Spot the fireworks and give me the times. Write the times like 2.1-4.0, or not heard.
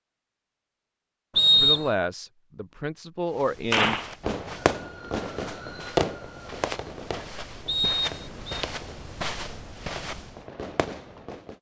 3.7-11.5.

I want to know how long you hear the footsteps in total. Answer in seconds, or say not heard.
7 s.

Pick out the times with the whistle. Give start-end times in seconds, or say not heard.
1.4-1.9, 7.7-8.7.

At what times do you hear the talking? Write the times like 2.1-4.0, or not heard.
1.6-4.1.